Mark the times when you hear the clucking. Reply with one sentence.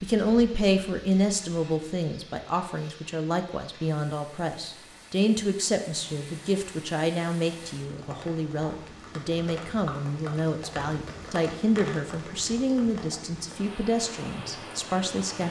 You can't hear the clucking here.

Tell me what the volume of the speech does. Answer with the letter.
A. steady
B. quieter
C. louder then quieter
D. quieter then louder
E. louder
A.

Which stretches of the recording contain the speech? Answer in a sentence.
You can hear the speech from 0.0 to 15.4 s.